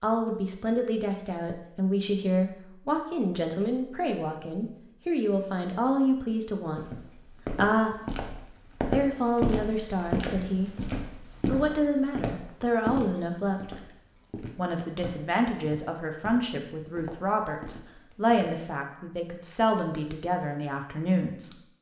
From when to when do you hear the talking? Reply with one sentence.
You can hear the talking from 0.0 to 8.0 s, from 8.8 to 13.8 s and from 14.6 to 21.6 s.